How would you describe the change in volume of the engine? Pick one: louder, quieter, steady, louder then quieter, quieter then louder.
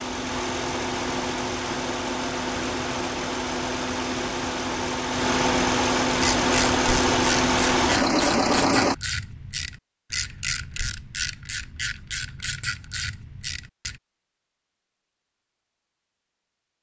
louder.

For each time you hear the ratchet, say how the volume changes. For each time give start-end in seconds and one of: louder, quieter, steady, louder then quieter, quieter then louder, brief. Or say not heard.
6.2-14.0 steady.